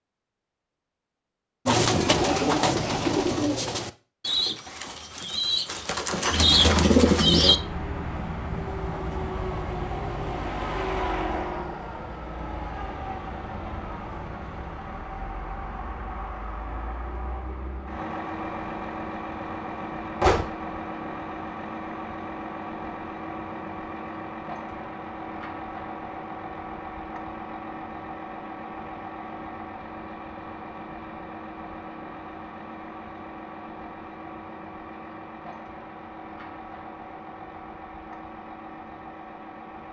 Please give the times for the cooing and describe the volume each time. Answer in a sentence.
You can hear the cooing from 1.6 to 7.6 s, getting quieter then louder.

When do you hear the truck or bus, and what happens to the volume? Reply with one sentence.
You can hear the truck or bus from 6.3 to 39.8 s, getting quieter.